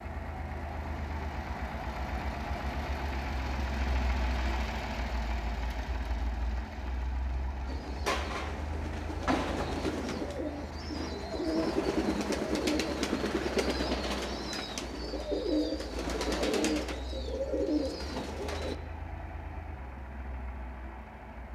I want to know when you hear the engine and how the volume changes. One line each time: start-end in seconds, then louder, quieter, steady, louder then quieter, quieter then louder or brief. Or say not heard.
0.0-21.5 quieter.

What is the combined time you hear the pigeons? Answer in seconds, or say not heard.
11 s.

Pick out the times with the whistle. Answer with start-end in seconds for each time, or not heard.
not heard.